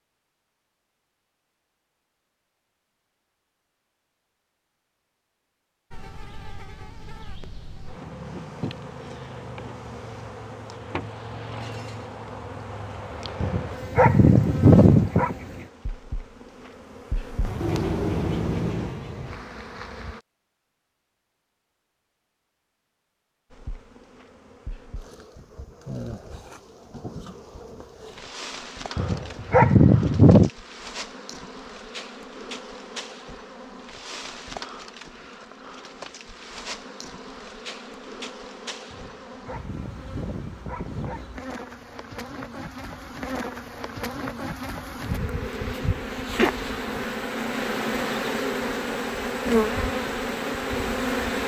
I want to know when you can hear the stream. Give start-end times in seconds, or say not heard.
not heard.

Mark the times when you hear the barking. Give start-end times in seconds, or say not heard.
13.4-15.3, 28.9-30.5, 38.9-41.3.